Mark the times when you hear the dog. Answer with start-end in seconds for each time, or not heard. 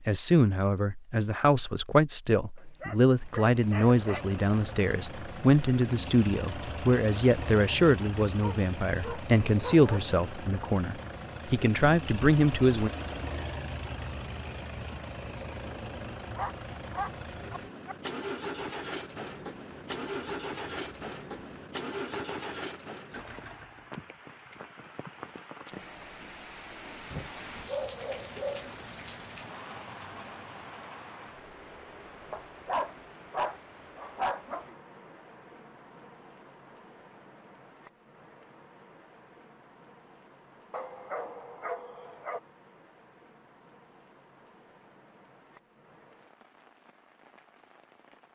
2.5-4.2, 8.2-10.0, 16.4-17.9, 27.1-28.8, 32.3-34.7, 40.7-42.4.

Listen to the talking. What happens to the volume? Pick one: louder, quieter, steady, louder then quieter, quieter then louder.
steady.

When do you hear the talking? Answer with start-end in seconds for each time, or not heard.
0.1-12.9.